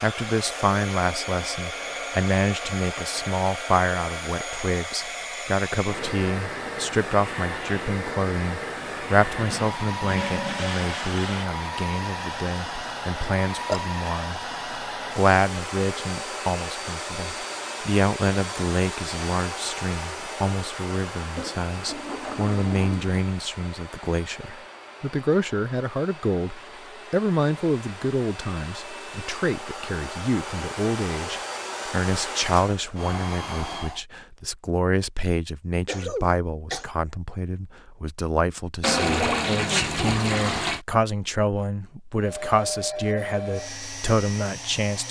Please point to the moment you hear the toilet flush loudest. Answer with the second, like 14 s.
39 s.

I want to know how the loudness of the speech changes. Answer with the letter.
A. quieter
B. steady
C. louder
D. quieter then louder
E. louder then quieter
B.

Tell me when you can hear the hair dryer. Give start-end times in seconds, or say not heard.
0.0-34.0, 42.1-45.0.